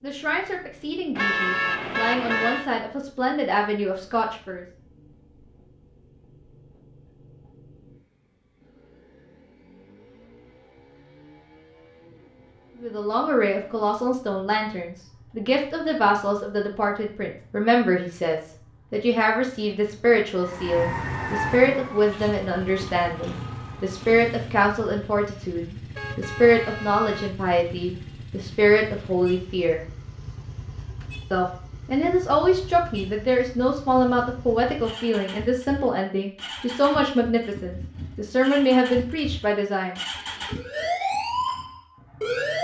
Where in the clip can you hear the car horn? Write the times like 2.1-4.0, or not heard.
1.1-2.7, 25.9-27.4.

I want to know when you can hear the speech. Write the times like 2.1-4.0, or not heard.
0.0-4.7, 12.8-29.9, 31.3-40.0.